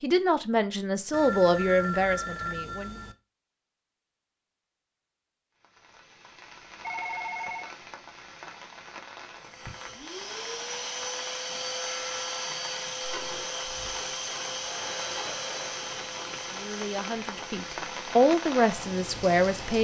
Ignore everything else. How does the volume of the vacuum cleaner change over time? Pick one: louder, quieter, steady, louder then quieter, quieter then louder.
quieter.